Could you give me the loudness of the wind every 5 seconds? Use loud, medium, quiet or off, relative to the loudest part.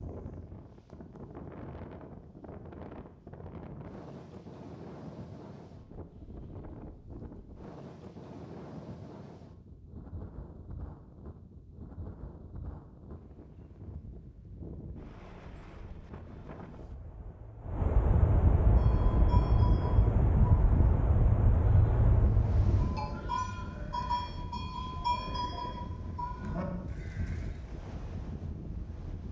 quiet, quiet, quiet, loud, loud, quiet.